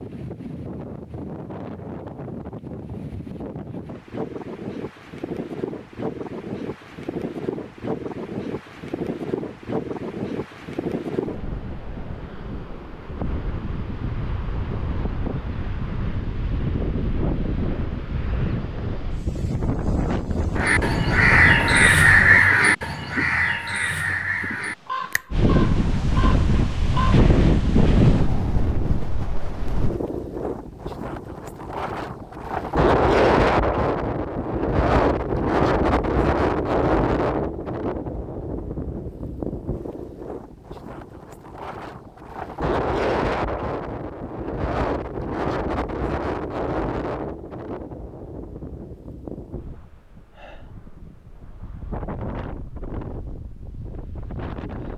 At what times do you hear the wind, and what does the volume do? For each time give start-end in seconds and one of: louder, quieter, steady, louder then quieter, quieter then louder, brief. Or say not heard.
0.0-54.9 louder then quieter.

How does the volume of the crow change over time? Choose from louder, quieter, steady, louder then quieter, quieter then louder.
quieter.